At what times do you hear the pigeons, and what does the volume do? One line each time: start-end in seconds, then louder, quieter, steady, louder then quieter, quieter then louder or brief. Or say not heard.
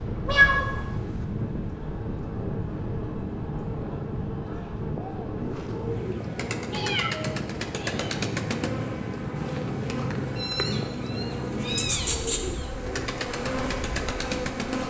5.4-14.8 steady.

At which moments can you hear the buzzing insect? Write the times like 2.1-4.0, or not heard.
0.0-14.8.